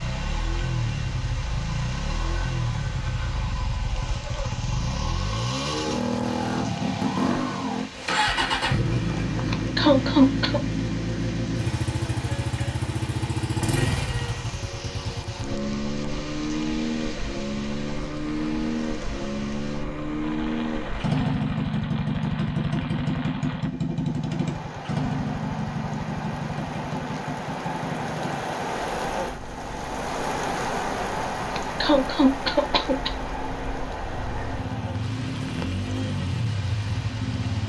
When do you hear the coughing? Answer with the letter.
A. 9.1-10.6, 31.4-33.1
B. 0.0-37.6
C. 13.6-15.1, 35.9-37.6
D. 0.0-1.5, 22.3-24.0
A.